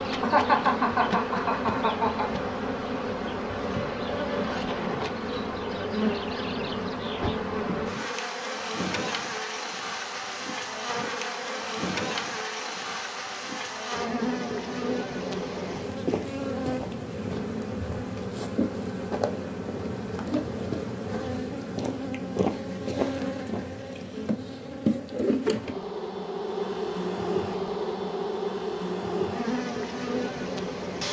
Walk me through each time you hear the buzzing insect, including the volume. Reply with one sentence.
You can hear the buzzing insect from 0.0 to 31.0 s, at a steady volume.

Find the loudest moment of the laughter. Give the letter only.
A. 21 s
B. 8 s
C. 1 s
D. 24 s
C.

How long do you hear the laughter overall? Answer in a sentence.
You can hear the laughter for 2 seconds altogether.